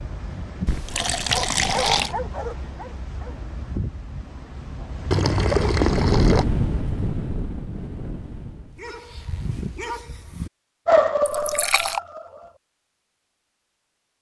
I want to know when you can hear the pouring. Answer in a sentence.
You can hear the pouring from 0.7 to 2.1 s, from 5.1 to 6.5 s and from 11.2 to 12.0 s.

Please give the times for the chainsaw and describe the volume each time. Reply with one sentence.
You can't hear the chainsaw here.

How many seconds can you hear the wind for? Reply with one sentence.
You can hear the wind for 9 seconds altogether.